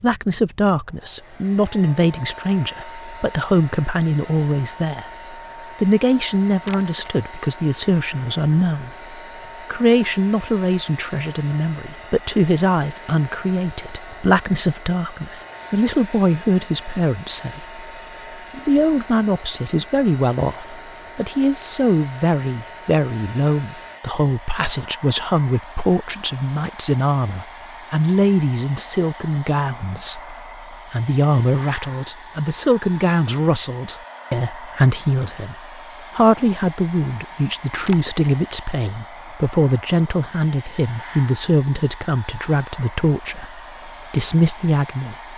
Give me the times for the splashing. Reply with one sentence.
The splashing can be heard from 6.7 to 7.2 s and from 37.9 to 38.5 s.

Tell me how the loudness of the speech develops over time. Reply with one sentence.
The loudness of the speech stays about the same.